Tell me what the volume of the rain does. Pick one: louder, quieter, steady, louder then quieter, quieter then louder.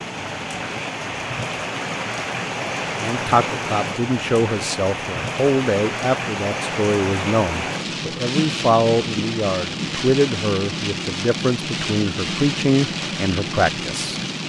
steady.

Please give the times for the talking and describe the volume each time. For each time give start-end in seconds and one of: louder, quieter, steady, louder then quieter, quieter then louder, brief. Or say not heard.
3.0-14.2 steady.